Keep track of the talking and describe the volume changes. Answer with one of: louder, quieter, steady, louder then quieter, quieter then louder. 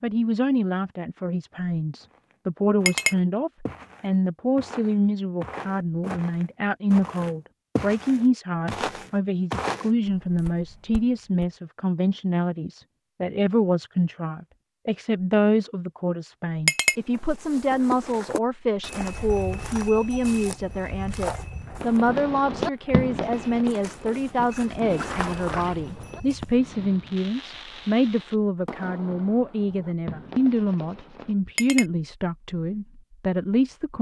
steady.